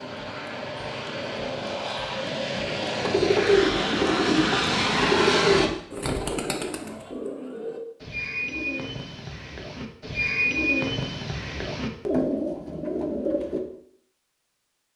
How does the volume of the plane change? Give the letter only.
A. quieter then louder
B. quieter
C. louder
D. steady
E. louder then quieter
C.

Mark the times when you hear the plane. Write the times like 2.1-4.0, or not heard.
0.0-5.7.